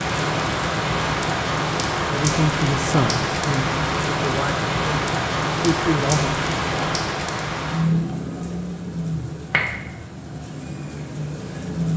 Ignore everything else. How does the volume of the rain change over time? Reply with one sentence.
The loudness of the rain goes down.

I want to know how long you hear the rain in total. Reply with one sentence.
You can hear the rain for 12 seconds altogether.